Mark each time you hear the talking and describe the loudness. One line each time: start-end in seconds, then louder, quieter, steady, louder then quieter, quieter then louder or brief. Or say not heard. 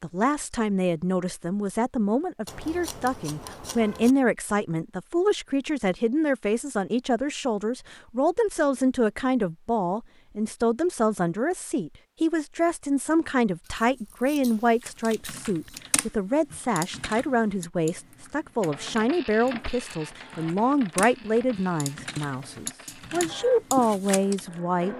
0.0-24.9 steady.